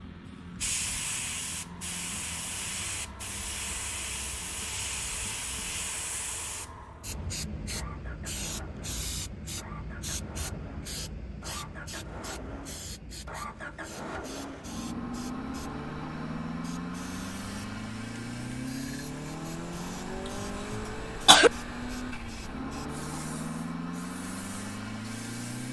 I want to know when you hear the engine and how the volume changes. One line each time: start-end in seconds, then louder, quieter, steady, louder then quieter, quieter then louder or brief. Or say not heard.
0.0-25.6 louder.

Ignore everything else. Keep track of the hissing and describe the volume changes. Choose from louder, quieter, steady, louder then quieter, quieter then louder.
quieter.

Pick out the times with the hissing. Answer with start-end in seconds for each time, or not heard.
0.0-25.6.